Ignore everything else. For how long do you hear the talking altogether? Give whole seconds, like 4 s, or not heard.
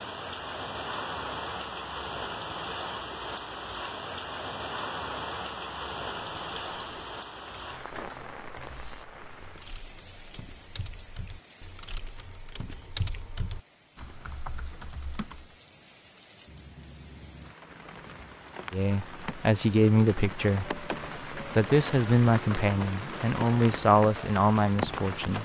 7 s.